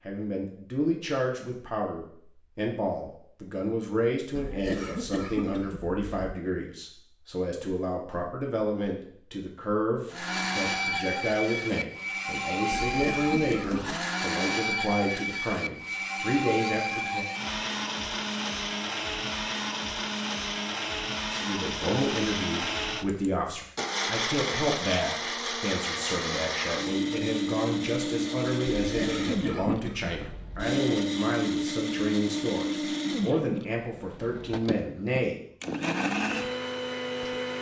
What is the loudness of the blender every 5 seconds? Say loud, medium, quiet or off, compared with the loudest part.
off, off, loud, loud, loud, loud, loud, loud.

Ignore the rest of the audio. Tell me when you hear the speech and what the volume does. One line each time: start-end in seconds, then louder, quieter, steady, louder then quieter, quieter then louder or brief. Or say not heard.
0.1-17.2 steady
21.3-35.4 steady.